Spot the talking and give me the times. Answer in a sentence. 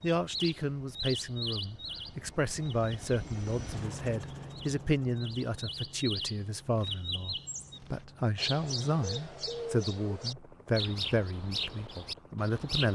The talking can be heard from 0.0 to 12.9 s.